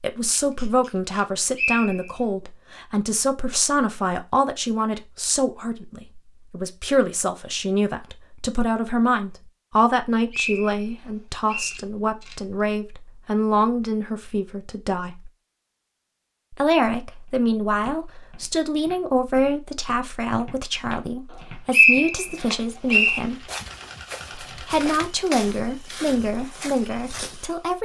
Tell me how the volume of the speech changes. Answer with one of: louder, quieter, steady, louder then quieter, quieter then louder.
steady.